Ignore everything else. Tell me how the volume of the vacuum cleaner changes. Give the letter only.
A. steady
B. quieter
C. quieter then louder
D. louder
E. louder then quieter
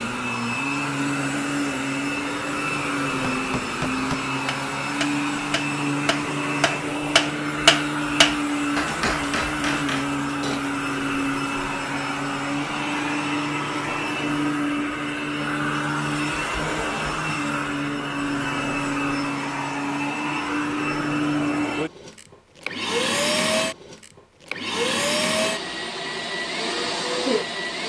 A.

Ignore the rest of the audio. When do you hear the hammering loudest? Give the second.
8 s.